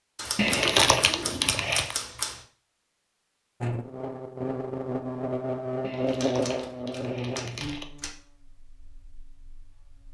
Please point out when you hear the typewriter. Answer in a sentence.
The typewriter can be heard from 0.1 to 2.4 s and from 6.0 to 8.2 s.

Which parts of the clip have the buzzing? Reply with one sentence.
You can hear the buzzing from 3.6 to 10.0 s.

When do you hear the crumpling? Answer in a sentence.
You can hear the crumpling from 0.3 to 1.9 s and from 5.8 to 7.8 s.